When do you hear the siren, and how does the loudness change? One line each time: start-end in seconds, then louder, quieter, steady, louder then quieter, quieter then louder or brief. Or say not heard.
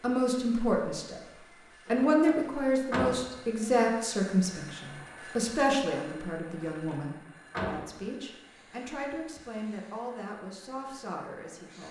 not heard.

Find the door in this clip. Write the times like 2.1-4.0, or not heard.
1.9-3.4, 6.5-8.0.